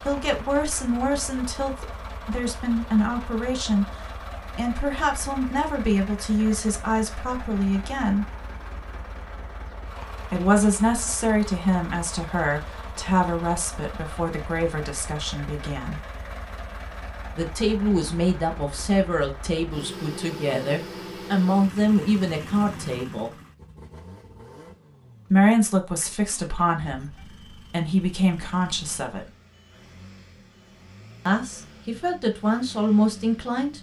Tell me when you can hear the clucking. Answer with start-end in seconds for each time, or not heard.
not heard.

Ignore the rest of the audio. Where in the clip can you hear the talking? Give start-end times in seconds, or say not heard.
0.0-3.9, 4.5-8.2, 10.3-16.0, 17.4-23.3, 25.3-29.3, 31.2-33.7.